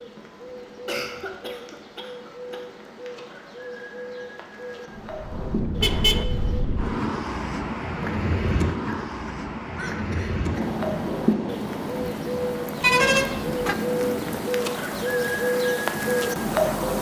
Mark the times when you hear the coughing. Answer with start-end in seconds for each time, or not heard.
0.8-2.9, 8.8-10.7.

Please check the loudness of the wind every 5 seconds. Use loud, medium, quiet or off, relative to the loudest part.
off, loud, loud, medium.